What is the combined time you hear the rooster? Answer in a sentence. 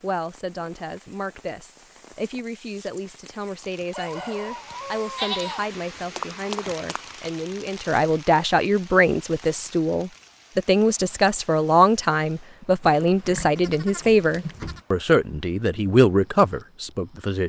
The rooster can be heard for 2 seconds in total.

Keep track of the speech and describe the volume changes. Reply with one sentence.
The volume of the speech goes up.